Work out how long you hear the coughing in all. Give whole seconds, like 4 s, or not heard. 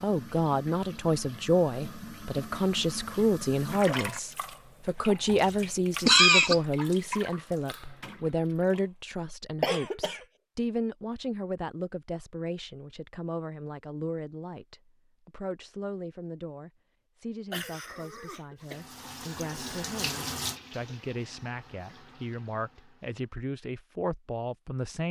3 s.